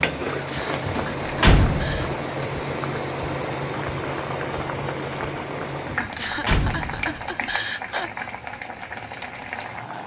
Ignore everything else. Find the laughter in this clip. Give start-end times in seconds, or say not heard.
0.5-2.1, 6.2-8.1.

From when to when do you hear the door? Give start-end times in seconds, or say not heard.
0.8-2.1, 5.8-7.5.